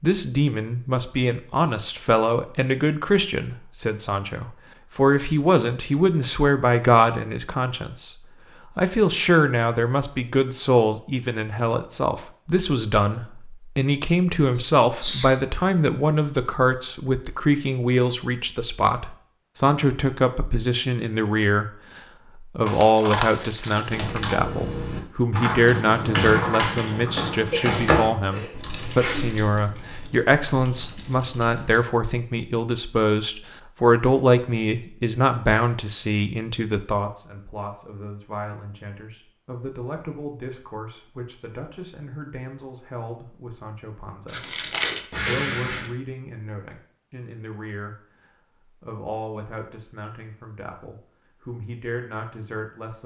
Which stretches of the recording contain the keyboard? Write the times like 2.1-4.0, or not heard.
23.9-31.9.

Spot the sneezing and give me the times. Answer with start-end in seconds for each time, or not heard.
14.6-15.3, 27.3-29.3, 45.1-45.9.